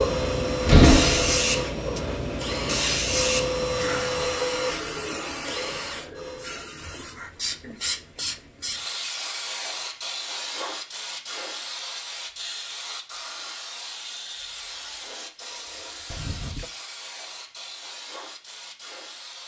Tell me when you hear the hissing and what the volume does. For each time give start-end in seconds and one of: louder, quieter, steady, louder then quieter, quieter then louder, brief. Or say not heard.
0.0-19.4 quieter.